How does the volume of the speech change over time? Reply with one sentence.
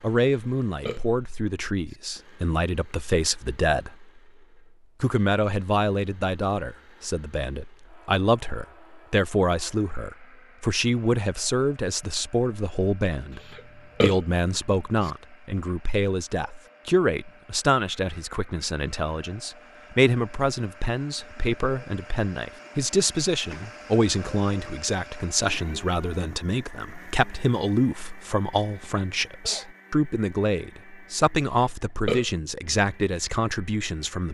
The volume of the speech stays about the same.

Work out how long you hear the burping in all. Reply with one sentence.
You can hear the burping for 2 seconds altogether.